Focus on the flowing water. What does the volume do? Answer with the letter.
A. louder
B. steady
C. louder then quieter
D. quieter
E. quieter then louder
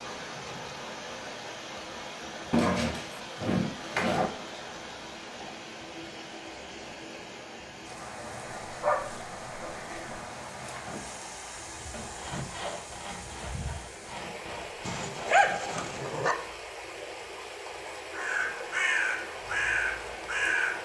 B.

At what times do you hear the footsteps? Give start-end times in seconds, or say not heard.
not heard.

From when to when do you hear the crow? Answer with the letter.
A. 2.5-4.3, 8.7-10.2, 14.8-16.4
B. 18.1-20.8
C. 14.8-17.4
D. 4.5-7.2
B.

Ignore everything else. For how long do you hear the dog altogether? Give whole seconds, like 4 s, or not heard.
5 s.